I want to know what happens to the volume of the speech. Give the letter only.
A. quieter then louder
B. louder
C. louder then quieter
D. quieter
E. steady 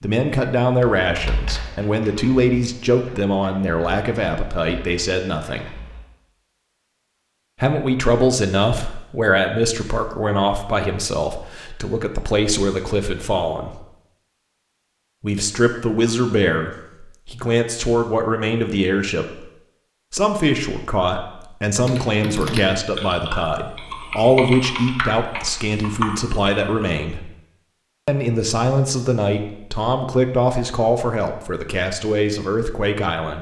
E.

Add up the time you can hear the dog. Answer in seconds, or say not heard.
not heard.